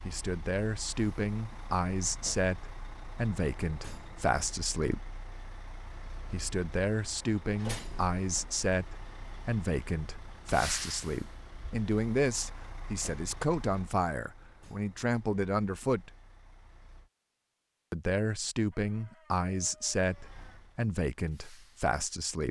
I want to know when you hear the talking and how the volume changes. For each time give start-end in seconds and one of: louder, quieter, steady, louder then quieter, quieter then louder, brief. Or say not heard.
0.1-5.0 steady
6.3-16.1 steady
17.9-22.4 steady.